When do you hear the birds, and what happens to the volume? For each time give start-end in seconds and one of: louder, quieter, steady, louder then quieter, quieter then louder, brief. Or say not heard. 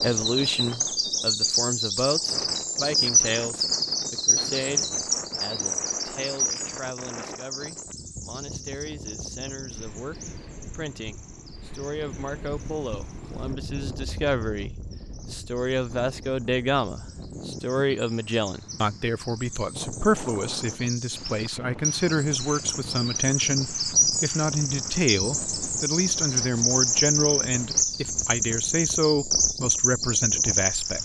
0.0-30.9 quieter then louder.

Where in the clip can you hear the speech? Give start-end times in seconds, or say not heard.
0.0-30.9.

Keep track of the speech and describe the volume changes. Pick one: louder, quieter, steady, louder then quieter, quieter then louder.
quieter then louder.